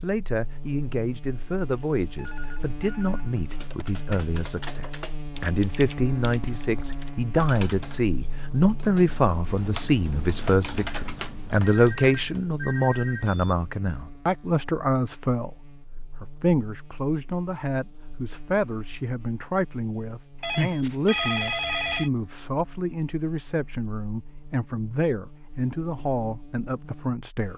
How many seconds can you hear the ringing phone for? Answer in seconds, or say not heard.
5 s.